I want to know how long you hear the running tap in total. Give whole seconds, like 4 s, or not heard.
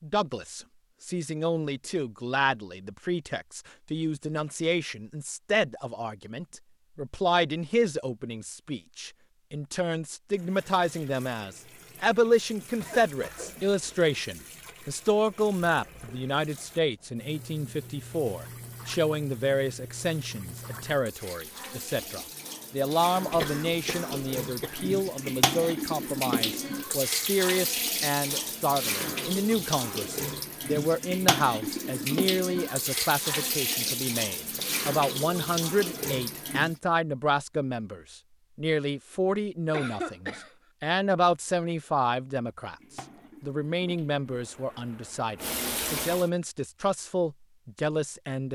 30 s.